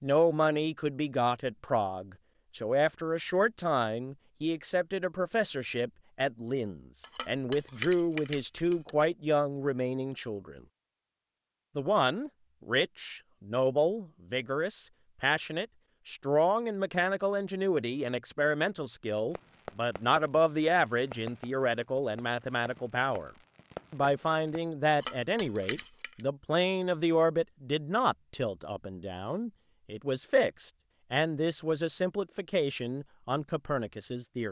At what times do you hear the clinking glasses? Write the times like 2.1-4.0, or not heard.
7.0-8.9, 24.9-26.2.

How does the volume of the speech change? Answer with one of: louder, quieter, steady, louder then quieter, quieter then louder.
steady.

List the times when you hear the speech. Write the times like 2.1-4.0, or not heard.
0.0-10.6, 11.8-23.3, 23.9-34.4.